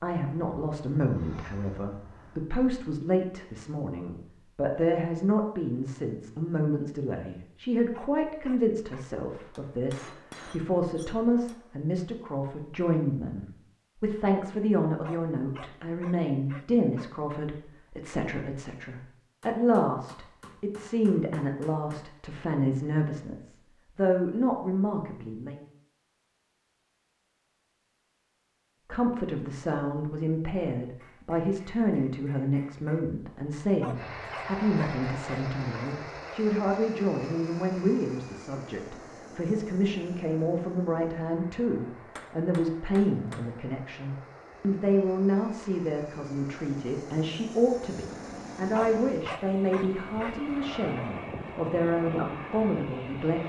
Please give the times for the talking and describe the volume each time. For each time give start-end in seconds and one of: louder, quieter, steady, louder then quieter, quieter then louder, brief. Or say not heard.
0.0-25.6 steady
28.9-53.4 steady.